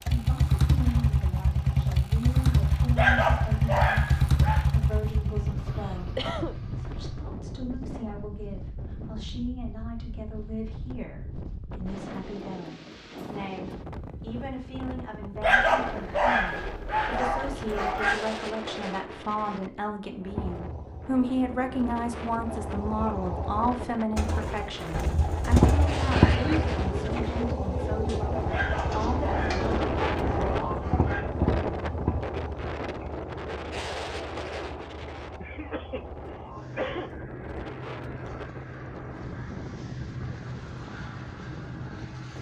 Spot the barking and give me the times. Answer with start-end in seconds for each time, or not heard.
3.0-4.7, 15.4-18.1, 28.4-31.2.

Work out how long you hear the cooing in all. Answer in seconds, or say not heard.
6 s.